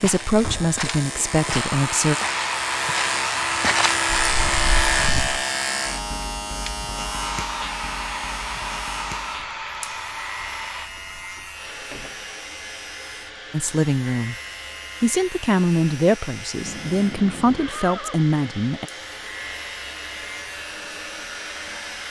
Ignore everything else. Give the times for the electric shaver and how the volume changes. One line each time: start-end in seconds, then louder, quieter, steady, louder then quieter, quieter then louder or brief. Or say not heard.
0.0-22.0 quieter.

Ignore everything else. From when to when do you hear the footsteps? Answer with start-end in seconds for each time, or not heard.
0.0-5.4.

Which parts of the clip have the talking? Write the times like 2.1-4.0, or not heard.
0.0-2.1, 13.5-14.3, 15.0-18.9.